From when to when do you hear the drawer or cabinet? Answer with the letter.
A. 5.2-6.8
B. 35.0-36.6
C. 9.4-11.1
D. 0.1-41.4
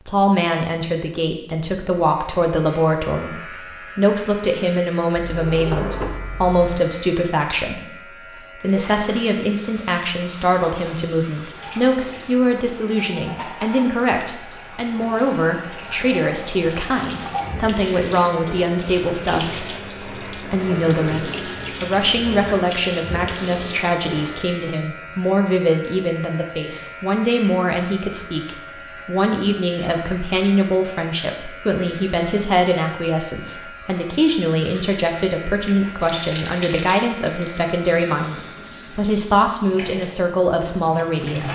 A.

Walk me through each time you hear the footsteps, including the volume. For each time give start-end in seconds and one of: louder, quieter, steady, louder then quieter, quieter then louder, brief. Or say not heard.
not heard.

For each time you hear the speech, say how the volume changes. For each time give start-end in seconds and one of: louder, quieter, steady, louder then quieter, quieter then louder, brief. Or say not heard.
0.1-41.4 steady.